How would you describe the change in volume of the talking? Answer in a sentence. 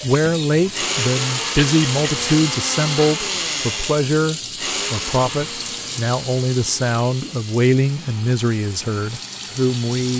The volume of the talking stays about the same.